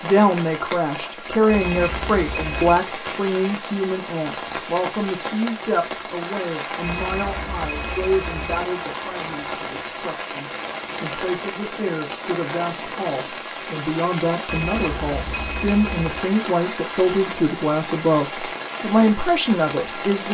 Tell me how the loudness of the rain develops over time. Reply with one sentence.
The volume of the rain stays about the same.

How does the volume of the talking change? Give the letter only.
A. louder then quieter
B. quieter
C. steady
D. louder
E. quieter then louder
E.